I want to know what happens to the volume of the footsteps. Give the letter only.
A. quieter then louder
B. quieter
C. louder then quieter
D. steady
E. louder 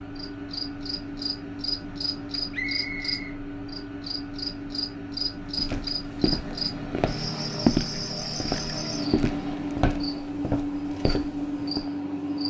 C.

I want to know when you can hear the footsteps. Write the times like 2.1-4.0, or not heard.
5.5-11.9.